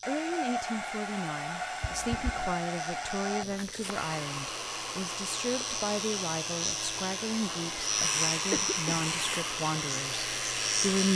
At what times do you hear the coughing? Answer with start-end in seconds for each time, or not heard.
1.8-2.5, 8.5-9.1.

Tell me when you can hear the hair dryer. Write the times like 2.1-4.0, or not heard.
0.0-11.1.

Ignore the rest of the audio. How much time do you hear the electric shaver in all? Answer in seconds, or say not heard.
11 s.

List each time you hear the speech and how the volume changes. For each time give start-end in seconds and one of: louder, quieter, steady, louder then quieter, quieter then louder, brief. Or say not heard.
0.1-11.1 steady.